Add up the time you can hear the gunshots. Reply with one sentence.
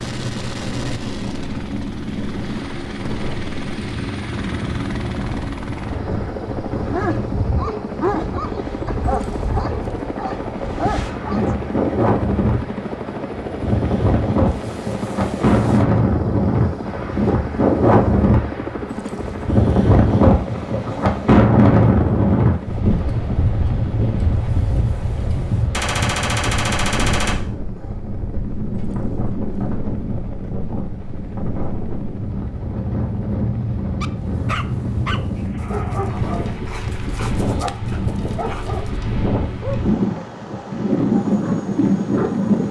You can hear the gunshots for 2 seconds altogether.